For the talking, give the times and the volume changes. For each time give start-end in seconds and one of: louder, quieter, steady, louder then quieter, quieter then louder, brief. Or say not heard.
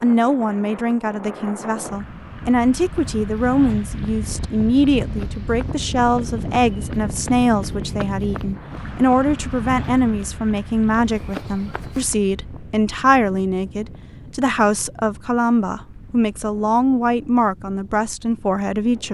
0.0-19.0 steady.